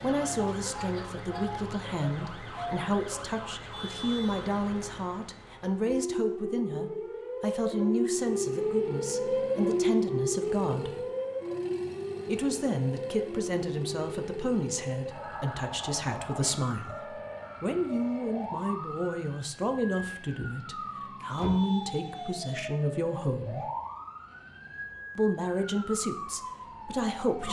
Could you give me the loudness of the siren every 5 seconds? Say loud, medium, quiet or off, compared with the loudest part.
medium, loud, loud, medium, medium, medium.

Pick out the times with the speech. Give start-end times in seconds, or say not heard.
0.0-11.0, 12.2-23.7, 25.1-27.4.